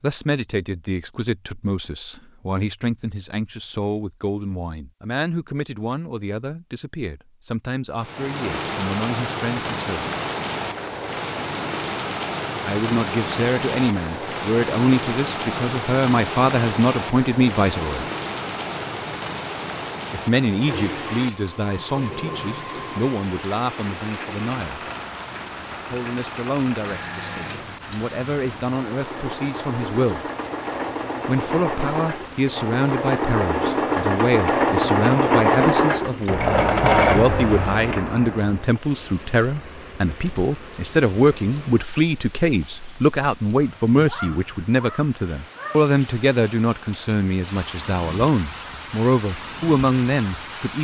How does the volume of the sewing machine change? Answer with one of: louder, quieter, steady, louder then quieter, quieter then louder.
louder.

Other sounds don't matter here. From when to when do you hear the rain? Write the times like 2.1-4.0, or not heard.
8.0-50.7.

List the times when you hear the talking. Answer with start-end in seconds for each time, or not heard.
0.0-10.2, 12.7-18.1, 20.1-24.8, 25.9-30.2, 31.2-50.7.